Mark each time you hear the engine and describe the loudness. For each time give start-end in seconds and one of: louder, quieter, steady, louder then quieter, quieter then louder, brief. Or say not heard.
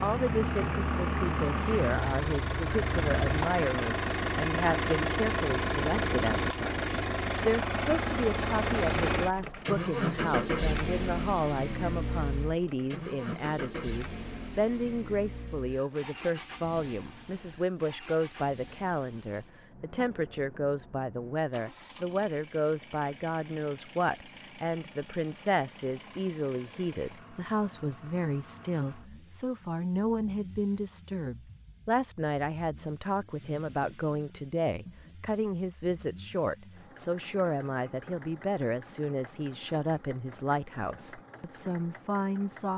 0.0-42.7 quieter.